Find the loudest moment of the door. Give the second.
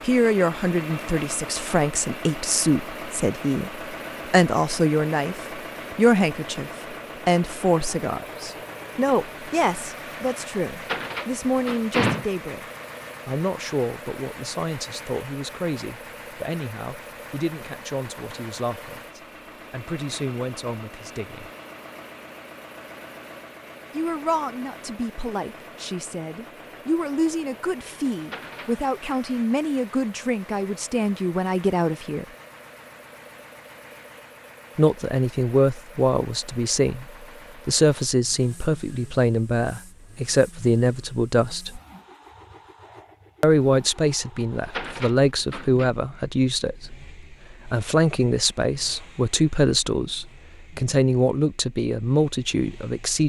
12 s.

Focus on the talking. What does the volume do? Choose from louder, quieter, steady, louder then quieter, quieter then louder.
quieter then louder.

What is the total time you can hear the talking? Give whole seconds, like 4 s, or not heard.
46 s.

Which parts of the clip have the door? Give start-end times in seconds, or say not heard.
10.8-12.2, 28.2-28.9, 44.6-45.9.